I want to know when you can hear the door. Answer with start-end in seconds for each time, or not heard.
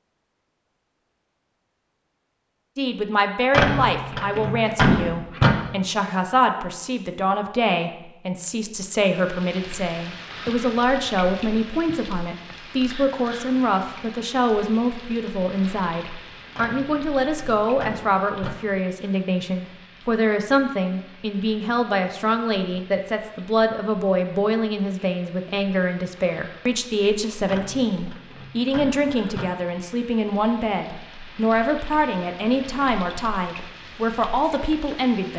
3.5-5.5, 16.6-18.6, 27.4-29.5.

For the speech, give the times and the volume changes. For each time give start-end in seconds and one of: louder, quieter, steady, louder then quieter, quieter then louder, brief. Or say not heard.
2.8-35.3 steady.